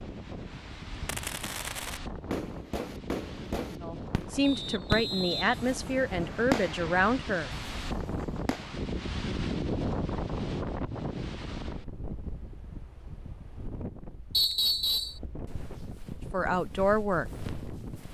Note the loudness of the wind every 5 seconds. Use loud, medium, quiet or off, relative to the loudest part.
medium, loud, loud, medium.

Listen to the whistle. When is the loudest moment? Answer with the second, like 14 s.
15 s.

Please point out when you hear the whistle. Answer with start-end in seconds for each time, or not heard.
4.4-6.5, 14.3-15.2.